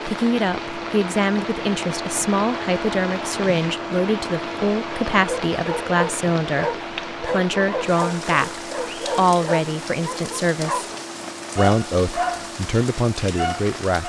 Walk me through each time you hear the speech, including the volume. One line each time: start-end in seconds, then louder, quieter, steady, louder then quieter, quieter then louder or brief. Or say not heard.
0.1-10.8 steady
11.6-14.0 brief.